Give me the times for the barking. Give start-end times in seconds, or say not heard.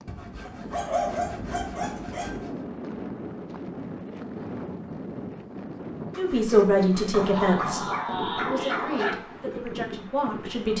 0.5-2.4, 7.1-9.2.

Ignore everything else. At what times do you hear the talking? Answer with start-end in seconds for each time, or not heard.
6.2-10.7.